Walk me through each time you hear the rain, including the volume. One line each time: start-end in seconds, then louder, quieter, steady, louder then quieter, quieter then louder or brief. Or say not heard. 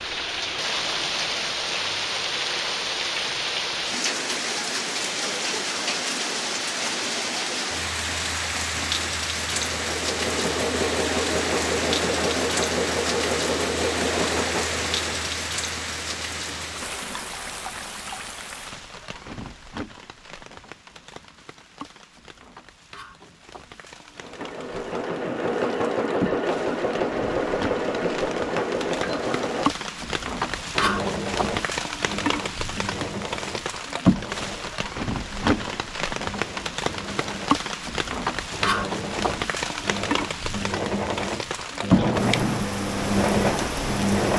0.0-44.3 quieter then louder.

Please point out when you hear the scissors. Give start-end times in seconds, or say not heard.
42.0-42.6.